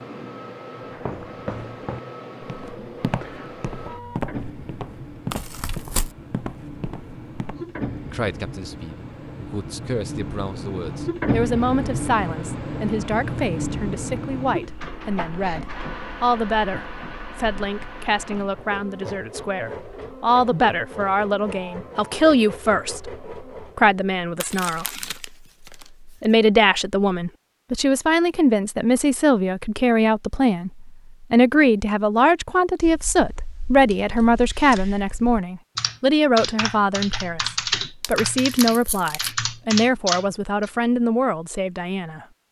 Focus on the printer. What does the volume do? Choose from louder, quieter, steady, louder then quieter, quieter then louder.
louder then quieter.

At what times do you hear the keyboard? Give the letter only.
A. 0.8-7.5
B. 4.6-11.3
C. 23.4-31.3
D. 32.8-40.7
D.